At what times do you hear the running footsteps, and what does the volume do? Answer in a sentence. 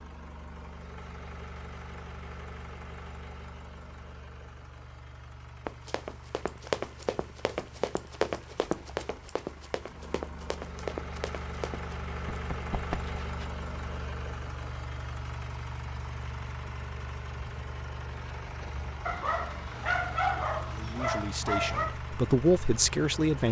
You can hear the running footsteps from 5.7 to 13.4 s, getting quieter.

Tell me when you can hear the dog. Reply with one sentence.
The dog can be heard from 19.1 to 21.9 s.